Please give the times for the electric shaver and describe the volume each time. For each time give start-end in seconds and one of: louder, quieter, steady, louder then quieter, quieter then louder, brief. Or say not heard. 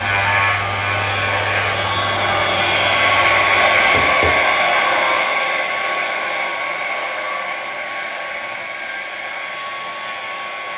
0.0-10.7 quieter.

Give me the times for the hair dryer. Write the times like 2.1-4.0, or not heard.
0.0-10.7.